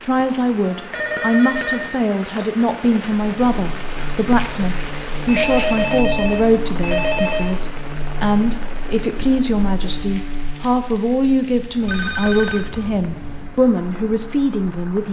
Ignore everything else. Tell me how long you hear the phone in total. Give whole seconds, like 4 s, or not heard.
6 s.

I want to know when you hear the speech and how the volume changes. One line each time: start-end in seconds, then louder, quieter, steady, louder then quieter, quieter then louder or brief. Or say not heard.
0.0-15.0 steady.